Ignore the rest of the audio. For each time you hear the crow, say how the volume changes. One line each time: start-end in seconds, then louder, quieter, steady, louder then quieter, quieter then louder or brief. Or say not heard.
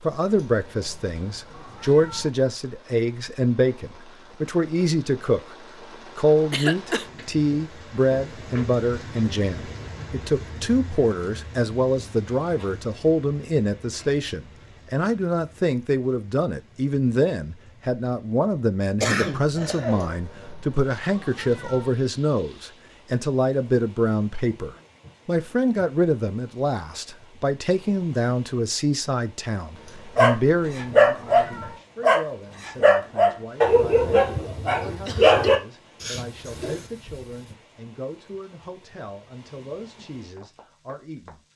not heard.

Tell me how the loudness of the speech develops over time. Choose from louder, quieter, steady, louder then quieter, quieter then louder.
quieter.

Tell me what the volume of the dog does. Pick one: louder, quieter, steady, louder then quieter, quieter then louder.
quieter.